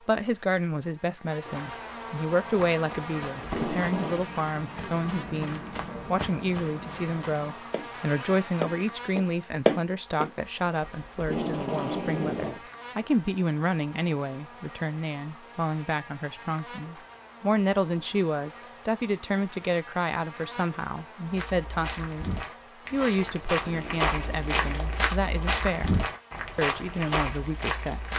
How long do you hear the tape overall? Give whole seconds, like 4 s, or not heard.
4 s.